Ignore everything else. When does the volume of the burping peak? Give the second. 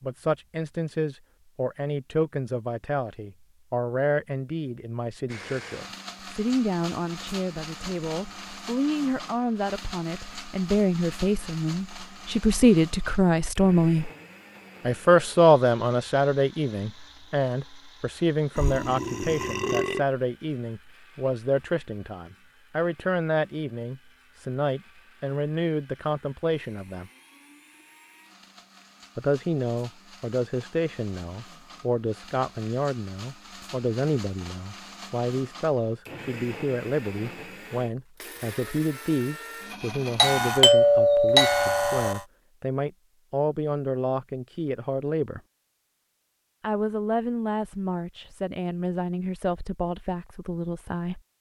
20 s.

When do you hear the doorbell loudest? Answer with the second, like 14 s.
41 s.